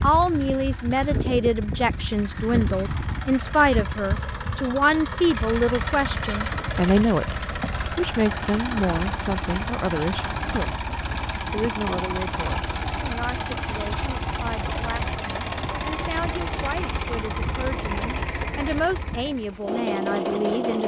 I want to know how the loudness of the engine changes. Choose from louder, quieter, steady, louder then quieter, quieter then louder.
steady.